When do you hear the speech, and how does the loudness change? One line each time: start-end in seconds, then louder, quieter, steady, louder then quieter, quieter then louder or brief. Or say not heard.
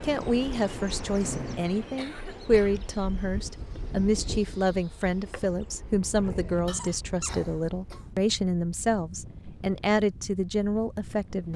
0.0-11.5 steady.